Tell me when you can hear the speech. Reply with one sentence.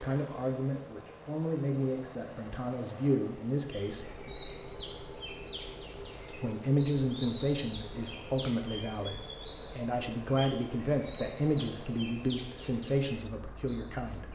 You can hear the speech from 0.0 to 4.3 s and from 6.4 to 14.3 s.